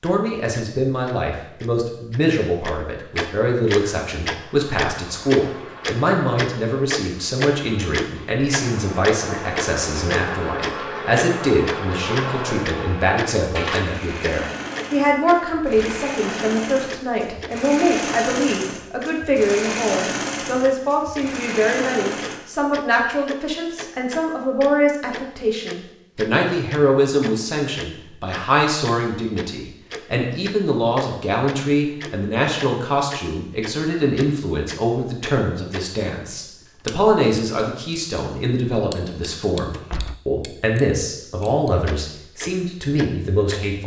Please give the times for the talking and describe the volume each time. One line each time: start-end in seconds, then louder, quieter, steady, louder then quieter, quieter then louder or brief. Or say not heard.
0.0-43.8 steady.